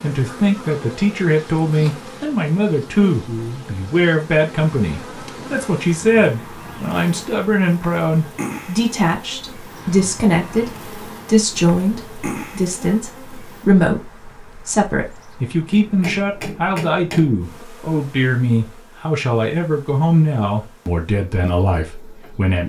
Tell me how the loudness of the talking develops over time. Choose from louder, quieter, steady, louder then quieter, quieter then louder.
steady.